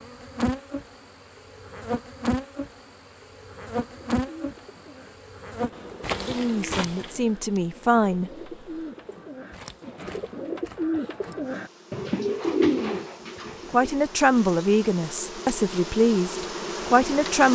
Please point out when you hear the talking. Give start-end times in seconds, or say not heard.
6.1-8.5, 13.7-17.5.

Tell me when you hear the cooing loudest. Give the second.
13 s.